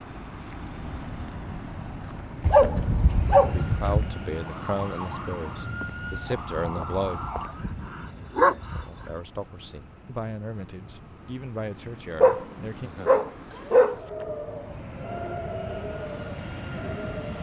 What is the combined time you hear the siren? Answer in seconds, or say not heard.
7 s.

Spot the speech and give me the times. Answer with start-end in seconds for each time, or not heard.
3.5-7.2, 8.8-12.9.